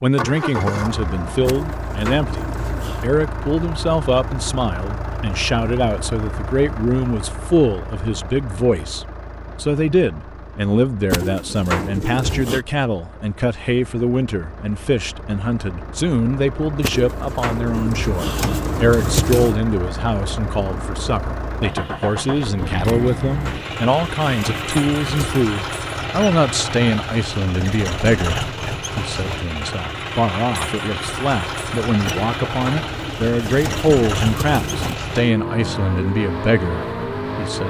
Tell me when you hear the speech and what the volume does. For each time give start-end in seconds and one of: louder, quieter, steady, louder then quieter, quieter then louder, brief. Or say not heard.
0.0-37.6 steady.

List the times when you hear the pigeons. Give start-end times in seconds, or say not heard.
1.4-3.0, 11.1-12.6, 16.8-19.6, 22.9-25.4, 32.0-35.0.